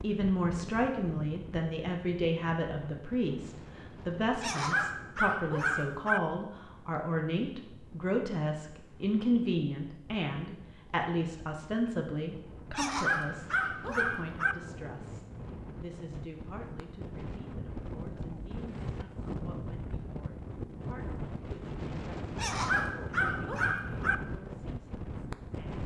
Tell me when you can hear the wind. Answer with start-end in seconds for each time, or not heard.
0.0-25.8.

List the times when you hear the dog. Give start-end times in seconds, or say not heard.
4.4-6.2, 12.8-14.6, 22.4-24.1.